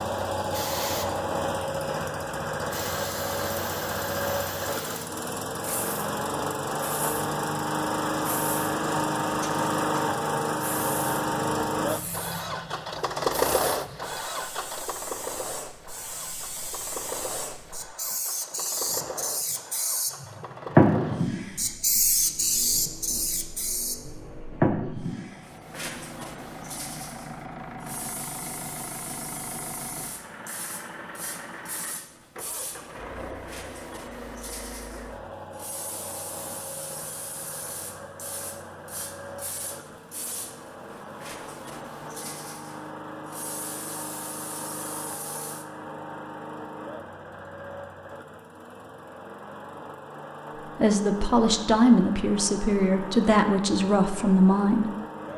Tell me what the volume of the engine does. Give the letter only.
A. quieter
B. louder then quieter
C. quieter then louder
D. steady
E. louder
A.